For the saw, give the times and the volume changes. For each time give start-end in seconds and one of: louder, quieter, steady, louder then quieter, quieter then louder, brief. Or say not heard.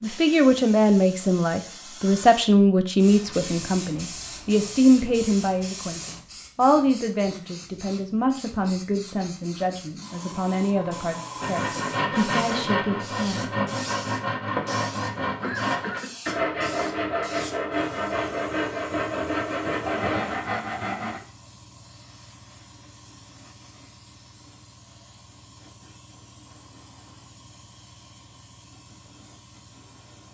11.4-21.2 steady.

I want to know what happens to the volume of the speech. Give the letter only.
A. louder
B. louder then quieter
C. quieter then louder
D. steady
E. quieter
E.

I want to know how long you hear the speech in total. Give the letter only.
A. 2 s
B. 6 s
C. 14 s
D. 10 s
C.